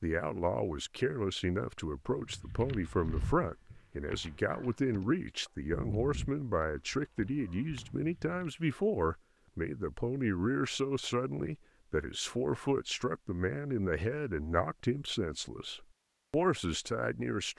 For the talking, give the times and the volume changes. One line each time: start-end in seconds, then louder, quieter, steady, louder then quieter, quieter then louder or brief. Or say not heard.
0.0-17.5 steady.